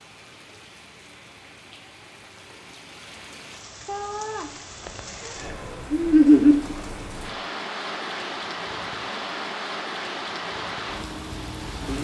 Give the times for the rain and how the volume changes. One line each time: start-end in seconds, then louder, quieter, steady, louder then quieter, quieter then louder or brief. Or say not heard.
0.0-12.0 louder.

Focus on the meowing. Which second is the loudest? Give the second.
6 s.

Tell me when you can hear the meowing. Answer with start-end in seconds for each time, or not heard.
3.9-5.0, 5.7-6.5.